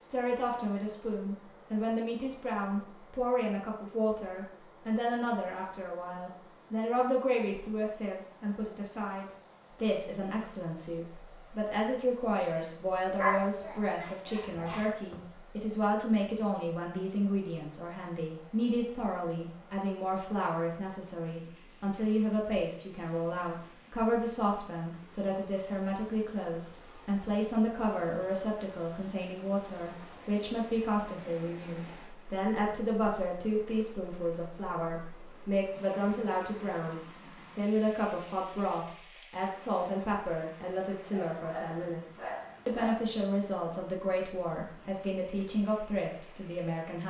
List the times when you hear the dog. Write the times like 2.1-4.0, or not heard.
13.2-15.2, 41.0-43.0.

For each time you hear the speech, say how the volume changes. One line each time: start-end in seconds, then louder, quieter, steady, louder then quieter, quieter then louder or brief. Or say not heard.
0.0-47.0 steady.